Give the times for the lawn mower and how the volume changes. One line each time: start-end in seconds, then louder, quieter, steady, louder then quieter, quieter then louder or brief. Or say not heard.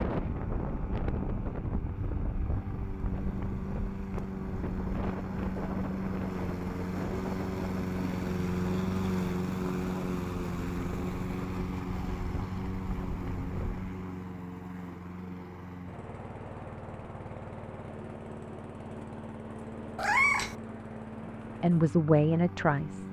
0.1-23.0 louder then quieter.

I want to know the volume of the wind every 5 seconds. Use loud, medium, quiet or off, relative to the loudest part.
loud, loud, medium, off, off.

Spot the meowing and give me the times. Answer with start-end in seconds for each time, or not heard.
19.9-20.6.